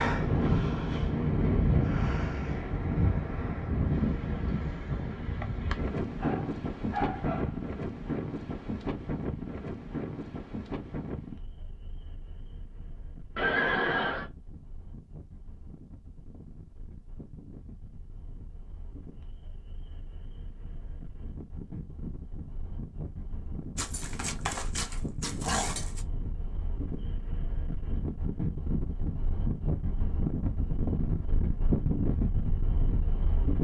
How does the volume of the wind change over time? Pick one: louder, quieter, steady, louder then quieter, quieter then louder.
quieter then louder.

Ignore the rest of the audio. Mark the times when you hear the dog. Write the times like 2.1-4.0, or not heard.
6.2-7.6, 23.8-26.1.